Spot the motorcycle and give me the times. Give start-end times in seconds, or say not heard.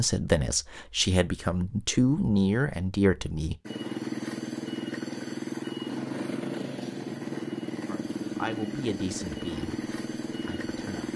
3.6-11.1.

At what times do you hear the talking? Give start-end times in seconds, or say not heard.
0.0-3.5, 7.8-11.1.